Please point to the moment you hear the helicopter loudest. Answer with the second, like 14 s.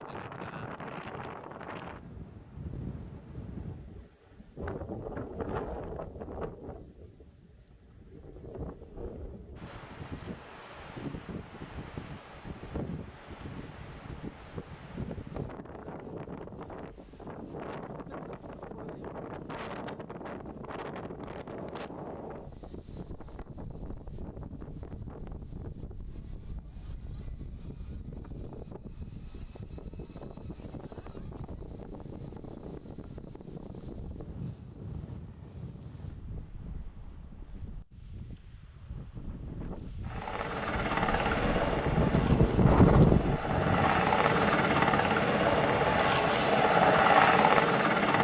47 s.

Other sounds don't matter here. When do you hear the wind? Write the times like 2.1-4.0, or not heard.
0.0-48.1.